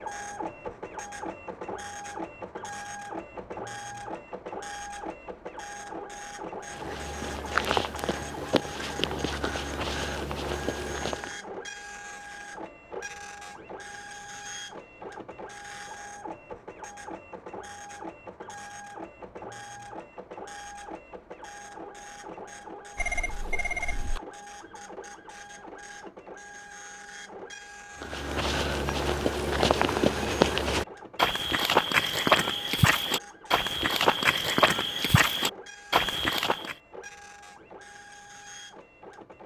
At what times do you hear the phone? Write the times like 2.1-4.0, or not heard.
22.9-24.2.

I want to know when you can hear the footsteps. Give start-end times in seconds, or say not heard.
6.7-11.3, 28.0-36.8.